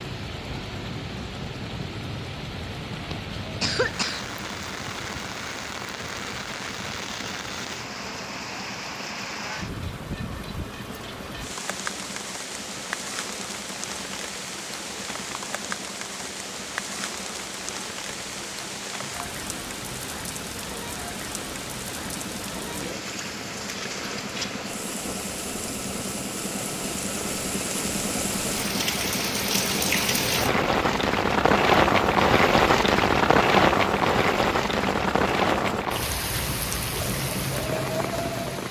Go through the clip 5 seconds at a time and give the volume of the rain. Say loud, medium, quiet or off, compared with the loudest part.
quiet, quiet, quiet, quiet, quiet, medium, loud, medium.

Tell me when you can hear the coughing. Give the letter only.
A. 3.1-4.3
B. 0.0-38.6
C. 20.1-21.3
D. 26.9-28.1
A.